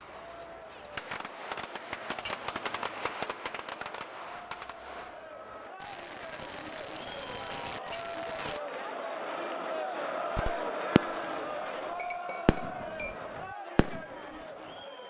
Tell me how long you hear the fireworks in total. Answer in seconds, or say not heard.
12 s.